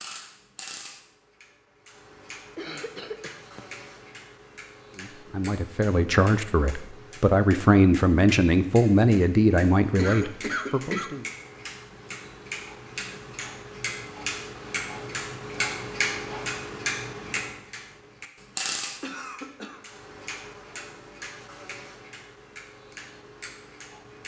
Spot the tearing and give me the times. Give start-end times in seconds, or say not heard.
not heard.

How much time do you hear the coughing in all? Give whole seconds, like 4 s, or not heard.
3 s.